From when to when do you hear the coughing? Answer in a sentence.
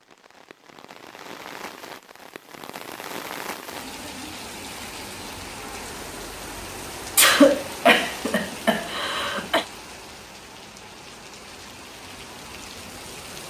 The coughing can be heard from 7.2 to 9.7 s.